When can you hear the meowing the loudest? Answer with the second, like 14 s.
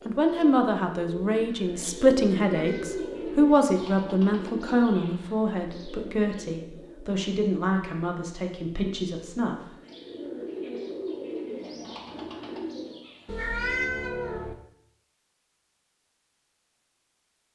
14 s.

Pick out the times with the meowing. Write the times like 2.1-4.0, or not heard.
2.5-3.5, 13.2-14.6.